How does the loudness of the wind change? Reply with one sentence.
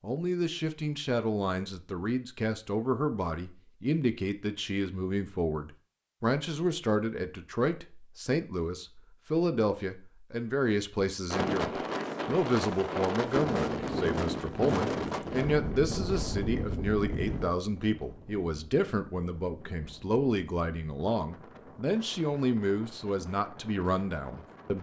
The volume of the wind goes down.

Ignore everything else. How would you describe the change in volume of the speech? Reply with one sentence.
The volume of the speech stays about the same.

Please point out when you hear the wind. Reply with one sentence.
The wind can be heard from 11.3 to 24.7 s.